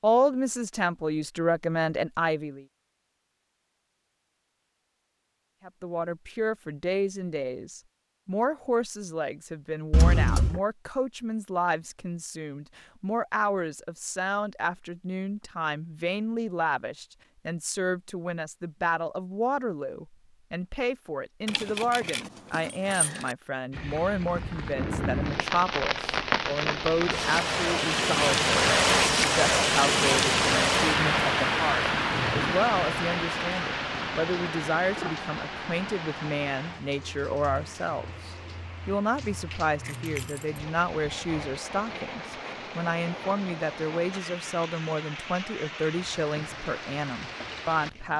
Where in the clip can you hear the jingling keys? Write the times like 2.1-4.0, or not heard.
9.9-10.6, 21.4-23.4, 39.8-40.6.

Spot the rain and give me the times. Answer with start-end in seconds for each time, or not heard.
23.7-48.1.